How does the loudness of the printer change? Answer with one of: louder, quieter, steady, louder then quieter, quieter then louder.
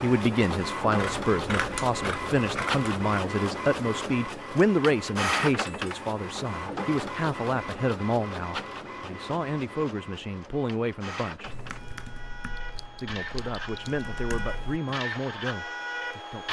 quieter then louder.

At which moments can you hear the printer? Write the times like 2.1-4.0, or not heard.
0.0-16.4.